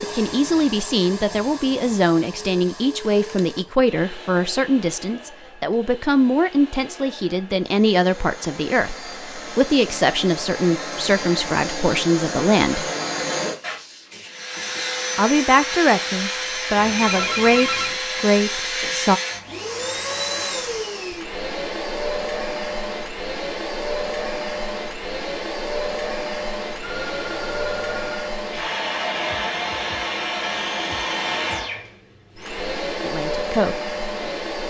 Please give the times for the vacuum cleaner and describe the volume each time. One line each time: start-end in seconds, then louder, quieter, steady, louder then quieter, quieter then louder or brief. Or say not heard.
0.0-34.6 louder.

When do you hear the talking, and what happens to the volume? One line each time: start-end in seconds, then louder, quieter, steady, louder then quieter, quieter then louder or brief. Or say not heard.
0.0-12.9 steady
15.2-19.2 steady
33.0-33.8 brief.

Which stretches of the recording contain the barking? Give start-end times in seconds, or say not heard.
not heard.